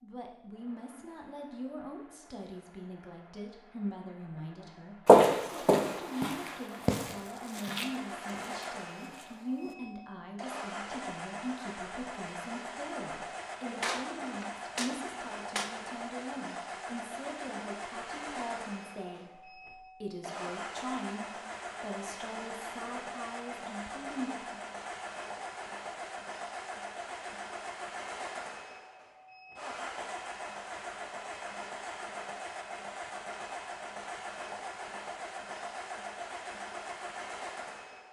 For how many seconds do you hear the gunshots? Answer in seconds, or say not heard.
2 s.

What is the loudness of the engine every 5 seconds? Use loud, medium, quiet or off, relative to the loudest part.
quiet, loud, loud, loud, loud, loud, loud, loud.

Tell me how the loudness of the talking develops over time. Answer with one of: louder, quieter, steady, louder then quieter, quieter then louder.
steady.